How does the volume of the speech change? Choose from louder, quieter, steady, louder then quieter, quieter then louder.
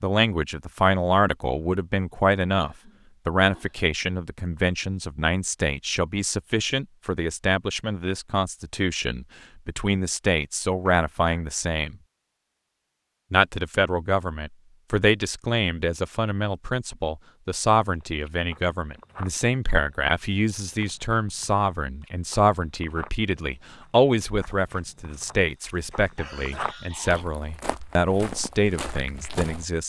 steady.